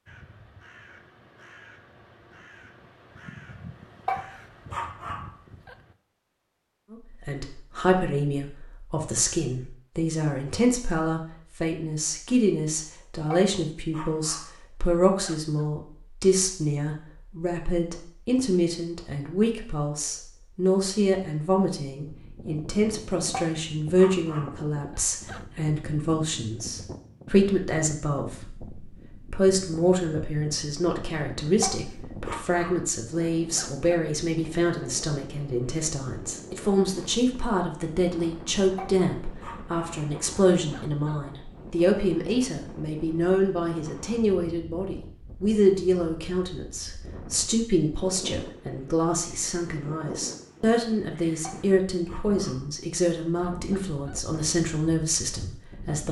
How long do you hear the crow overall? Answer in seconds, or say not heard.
6 s.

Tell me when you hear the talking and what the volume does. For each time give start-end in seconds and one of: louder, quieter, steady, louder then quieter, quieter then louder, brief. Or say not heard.
6.9-56.0 steady.